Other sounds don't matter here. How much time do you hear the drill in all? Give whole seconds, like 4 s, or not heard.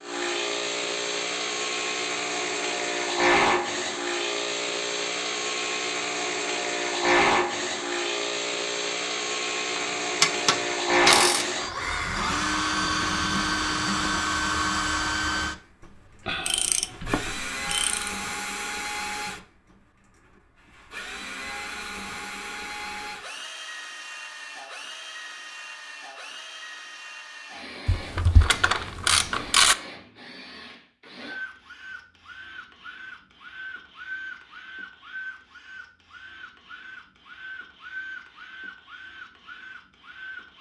38 s.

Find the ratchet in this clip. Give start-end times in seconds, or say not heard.
9.8-11.6, 16.2-18.1, 27.9-29.8.